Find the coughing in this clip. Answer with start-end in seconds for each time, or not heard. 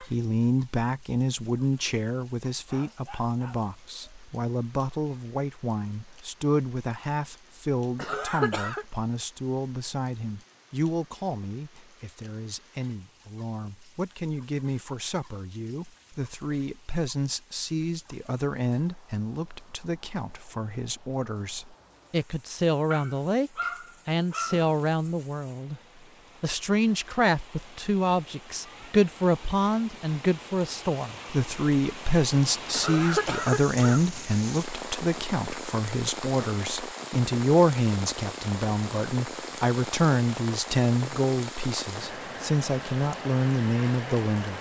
8.0-8.8, 32.7-34.0.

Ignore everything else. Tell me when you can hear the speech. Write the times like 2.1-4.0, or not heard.
0.0-25.8, 26.4-44.5.